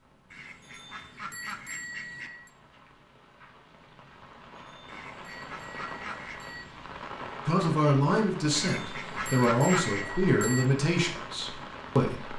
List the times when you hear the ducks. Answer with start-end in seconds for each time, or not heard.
0.3-2.3, 4.8-6.4, 8.6-10.1.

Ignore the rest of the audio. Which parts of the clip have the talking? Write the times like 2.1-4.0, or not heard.
7.5-12.3.